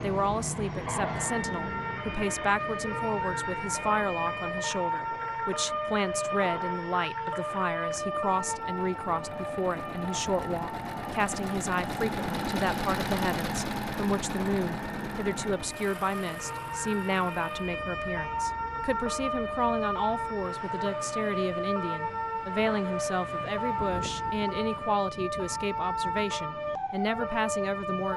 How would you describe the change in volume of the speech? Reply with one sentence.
The loudness of the speech stays about the same.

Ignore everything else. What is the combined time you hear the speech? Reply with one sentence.
The speech can be heard for 28 seconds in total.